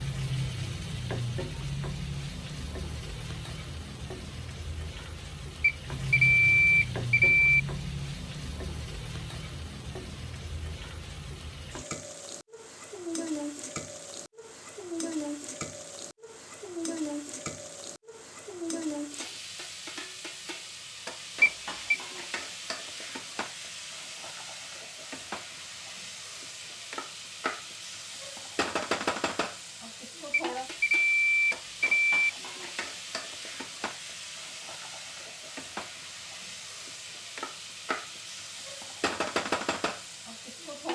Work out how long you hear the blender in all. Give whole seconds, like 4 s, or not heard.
not heard.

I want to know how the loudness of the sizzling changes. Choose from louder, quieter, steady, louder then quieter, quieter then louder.
steady.